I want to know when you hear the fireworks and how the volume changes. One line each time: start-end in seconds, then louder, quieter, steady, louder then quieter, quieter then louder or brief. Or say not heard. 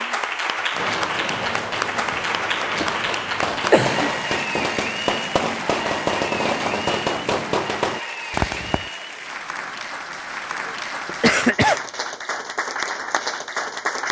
0.7-8.9 louder.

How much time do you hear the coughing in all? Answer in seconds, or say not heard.
3 s.